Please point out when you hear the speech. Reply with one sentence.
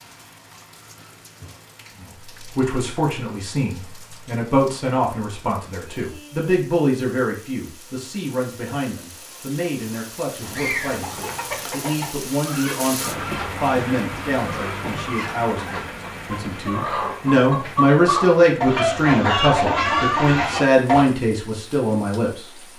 The speech can be heard from 2.0 to 22.4 s.